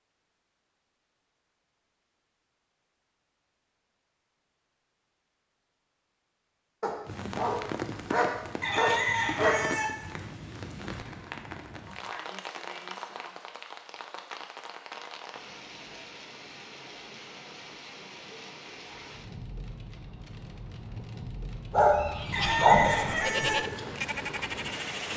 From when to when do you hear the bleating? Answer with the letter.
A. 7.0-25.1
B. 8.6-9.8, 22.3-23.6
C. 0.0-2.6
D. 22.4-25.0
D.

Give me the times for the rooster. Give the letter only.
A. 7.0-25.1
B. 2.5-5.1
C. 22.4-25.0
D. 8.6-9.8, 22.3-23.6
D.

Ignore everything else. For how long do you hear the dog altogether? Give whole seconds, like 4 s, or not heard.
4 s.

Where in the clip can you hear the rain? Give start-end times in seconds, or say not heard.
7.0-25.1.